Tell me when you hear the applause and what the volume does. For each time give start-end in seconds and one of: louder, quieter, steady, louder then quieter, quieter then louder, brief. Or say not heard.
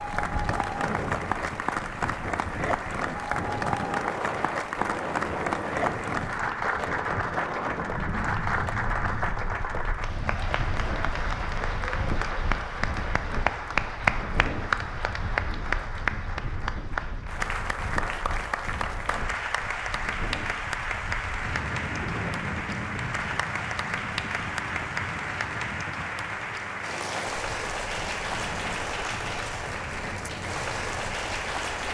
0.0-31.8 steady.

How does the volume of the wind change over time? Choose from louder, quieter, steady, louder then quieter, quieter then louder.
quieter.